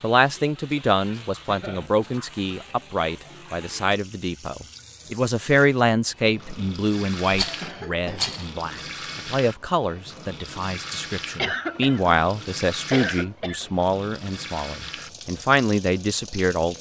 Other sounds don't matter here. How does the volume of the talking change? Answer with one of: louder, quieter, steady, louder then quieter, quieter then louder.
steady.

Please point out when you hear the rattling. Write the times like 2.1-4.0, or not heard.
7.3-8.5.